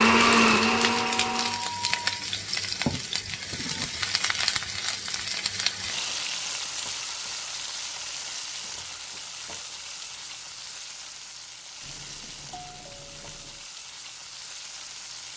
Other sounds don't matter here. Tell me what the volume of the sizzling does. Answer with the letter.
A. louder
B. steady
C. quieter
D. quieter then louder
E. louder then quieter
C.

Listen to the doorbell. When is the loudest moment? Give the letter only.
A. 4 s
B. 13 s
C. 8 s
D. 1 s
D.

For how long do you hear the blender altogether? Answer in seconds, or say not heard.
2 s.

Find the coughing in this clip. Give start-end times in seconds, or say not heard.
not heard.